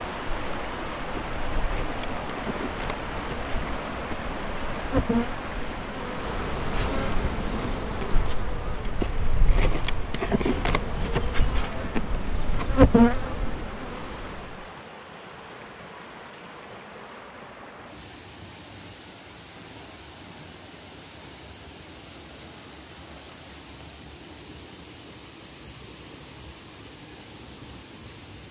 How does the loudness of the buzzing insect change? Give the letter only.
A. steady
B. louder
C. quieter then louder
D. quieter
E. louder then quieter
B.